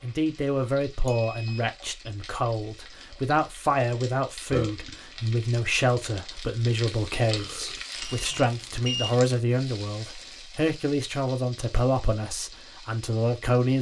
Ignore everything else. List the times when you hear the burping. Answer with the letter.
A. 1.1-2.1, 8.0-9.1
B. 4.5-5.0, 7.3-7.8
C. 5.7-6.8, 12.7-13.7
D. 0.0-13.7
B.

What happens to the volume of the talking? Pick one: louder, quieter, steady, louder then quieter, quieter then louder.
steady.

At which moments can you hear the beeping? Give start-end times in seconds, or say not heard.
1.1-2.1, 8.0-9.1.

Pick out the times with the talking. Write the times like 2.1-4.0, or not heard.
0.0-13.7.